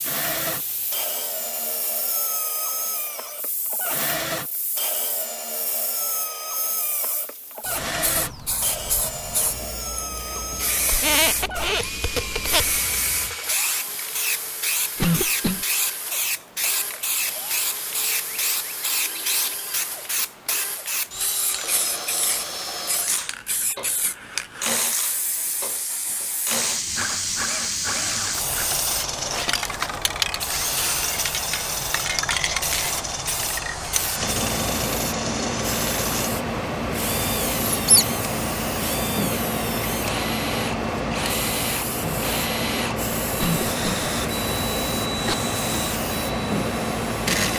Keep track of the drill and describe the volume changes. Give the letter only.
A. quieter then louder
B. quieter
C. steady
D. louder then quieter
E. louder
C.